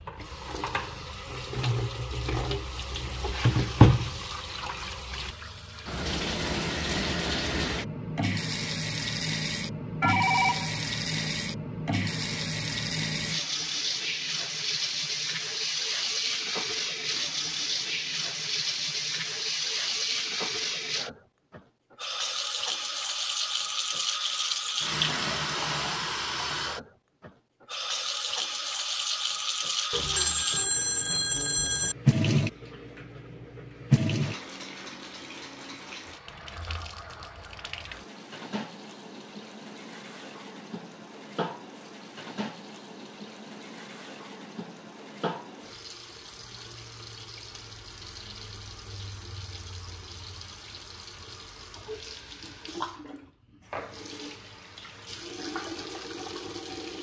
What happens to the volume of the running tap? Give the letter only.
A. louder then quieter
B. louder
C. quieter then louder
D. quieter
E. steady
D.